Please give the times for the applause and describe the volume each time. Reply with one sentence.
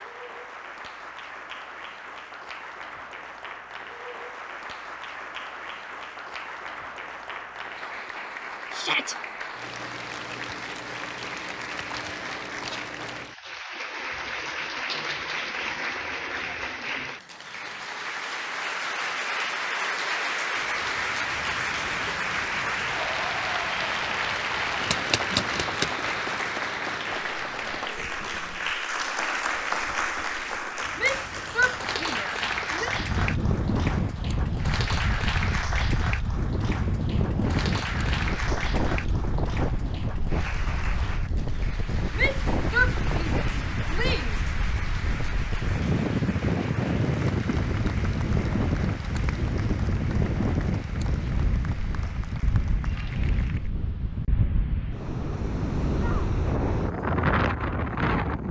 You can hear the applause from 0.0 to 53.7 s, getting louder then quieter.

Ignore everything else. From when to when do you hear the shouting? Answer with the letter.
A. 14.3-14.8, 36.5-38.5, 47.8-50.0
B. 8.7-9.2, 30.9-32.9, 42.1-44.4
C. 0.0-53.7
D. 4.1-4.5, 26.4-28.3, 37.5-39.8
B.